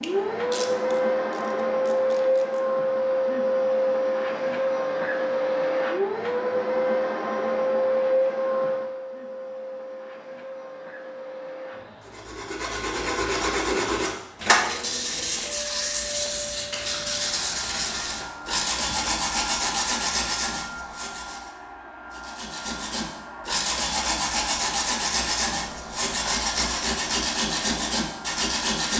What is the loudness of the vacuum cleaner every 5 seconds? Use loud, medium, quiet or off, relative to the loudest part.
loud, loud, quiet, quiet, quiet, quiet.